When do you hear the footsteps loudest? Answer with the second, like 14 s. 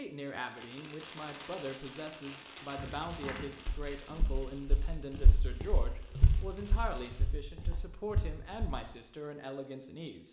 6 s.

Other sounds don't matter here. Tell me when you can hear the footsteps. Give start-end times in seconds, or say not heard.
2.8-8.8.